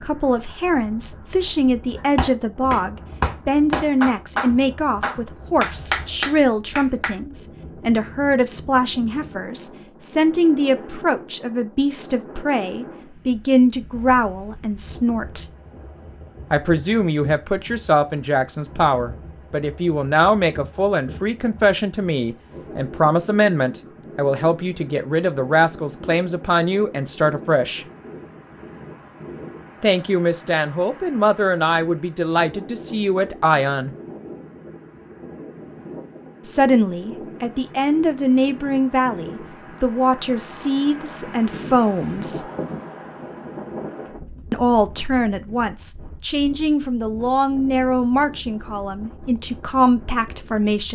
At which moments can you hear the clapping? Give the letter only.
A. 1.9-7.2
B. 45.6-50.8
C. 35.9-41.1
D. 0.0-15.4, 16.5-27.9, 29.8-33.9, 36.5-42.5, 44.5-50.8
A.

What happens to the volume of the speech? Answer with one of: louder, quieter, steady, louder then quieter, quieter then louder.
steady.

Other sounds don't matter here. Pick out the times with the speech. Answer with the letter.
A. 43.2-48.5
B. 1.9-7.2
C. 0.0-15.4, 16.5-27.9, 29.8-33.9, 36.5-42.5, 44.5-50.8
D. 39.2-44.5
C.